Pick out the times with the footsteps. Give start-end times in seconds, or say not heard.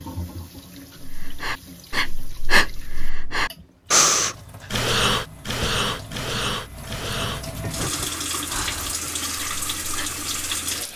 not heard.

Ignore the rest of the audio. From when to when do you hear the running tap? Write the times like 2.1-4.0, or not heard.
0.0-10.9.